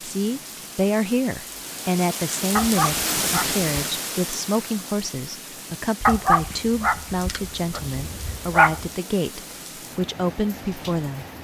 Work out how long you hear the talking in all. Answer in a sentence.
You can hear the talking for 11 seconds altogether.